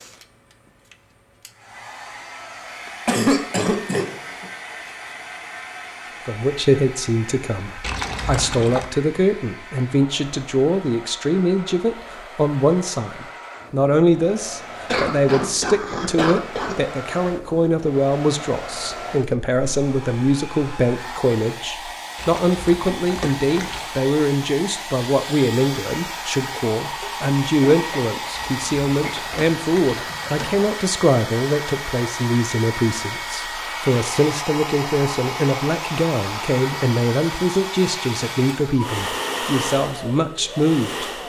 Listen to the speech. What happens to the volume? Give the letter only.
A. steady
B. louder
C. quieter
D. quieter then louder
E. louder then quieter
A.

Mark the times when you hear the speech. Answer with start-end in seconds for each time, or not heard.
6.2-41.1.